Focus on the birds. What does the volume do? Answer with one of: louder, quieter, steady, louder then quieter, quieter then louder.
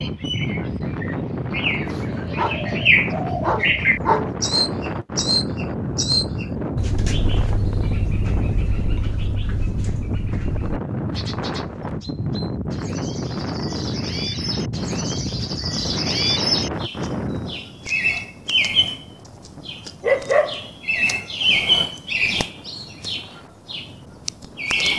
quieter then louder.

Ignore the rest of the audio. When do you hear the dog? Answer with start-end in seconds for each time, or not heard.
1.9-4.3, 19.6-20.7.